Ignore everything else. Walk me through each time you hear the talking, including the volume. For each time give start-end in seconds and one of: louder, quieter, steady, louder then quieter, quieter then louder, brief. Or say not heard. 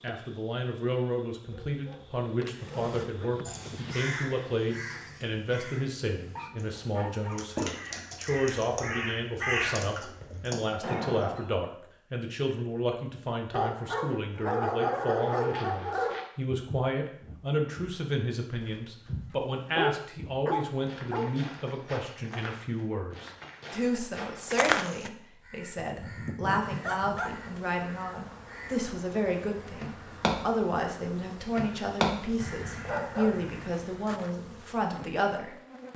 0.0-35.9 steady.